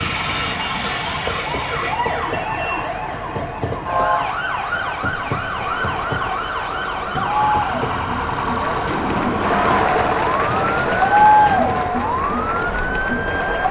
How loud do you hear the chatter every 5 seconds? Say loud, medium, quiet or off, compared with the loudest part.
quiet, medium, loud.